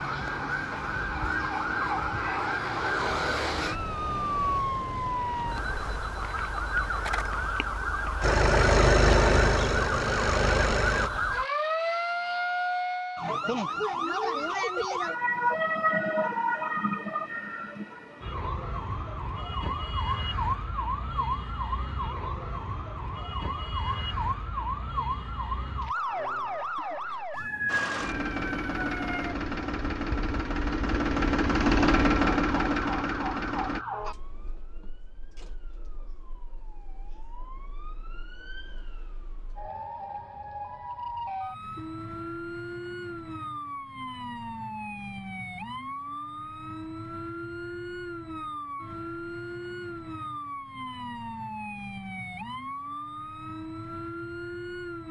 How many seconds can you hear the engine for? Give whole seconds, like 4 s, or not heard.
9 s.